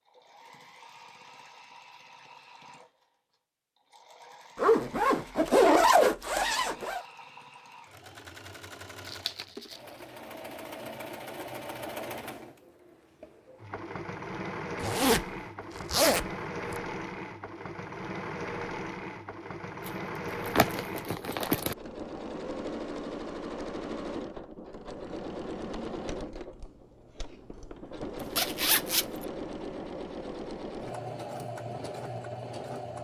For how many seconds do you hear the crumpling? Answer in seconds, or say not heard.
3 s.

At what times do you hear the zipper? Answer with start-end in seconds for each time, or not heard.
4.5-7.0, 14.8-16.8, 28.4-29.1.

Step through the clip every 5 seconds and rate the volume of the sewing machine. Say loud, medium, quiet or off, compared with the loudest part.
quiet, medium, loud, loud, loud, loud, loud.